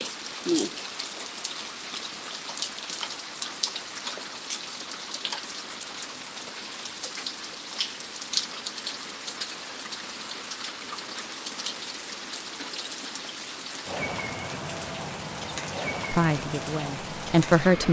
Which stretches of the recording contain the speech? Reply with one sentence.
You can hear the speech from 16.1 to 17.8 s.